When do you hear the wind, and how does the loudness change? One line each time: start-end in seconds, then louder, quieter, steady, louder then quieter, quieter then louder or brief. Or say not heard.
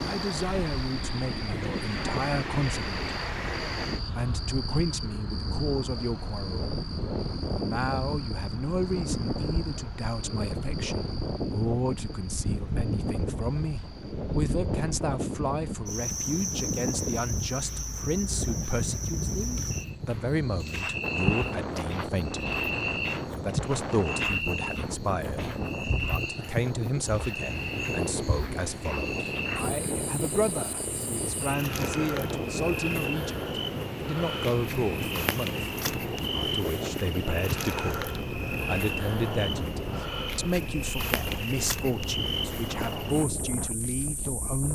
0.0-44.7 steady.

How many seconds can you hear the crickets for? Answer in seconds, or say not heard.
45 s.